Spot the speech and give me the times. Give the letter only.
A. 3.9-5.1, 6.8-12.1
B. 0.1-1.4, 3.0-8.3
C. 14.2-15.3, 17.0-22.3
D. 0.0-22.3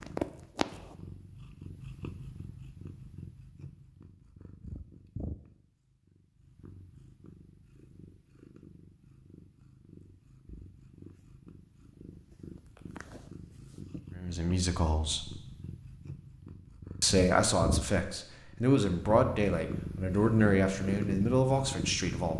C.